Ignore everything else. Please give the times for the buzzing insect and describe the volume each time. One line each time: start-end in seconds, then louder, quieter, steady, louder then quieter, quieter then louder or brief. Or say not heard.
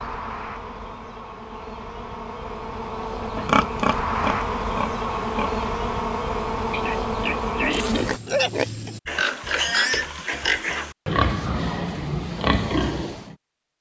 0.0-8.2 louder.